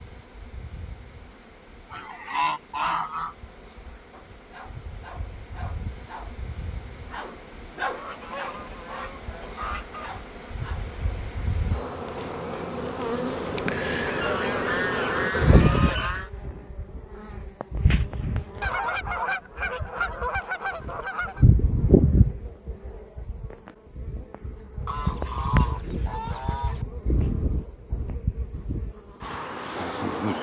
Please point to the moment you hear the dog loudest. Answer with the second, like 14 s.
8 s.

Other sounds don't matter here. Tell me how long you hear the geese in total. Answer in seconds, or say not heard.
11 s.